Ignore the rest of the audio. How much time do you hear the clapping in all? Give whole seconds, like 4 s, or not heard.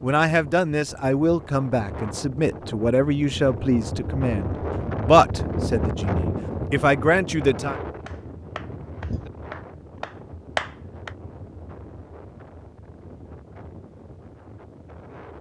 3 s.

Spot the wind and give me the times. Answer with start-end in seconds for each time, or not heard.
0.0-15.3.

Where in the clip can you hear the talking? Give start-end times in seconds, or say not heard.
0.0-7.8.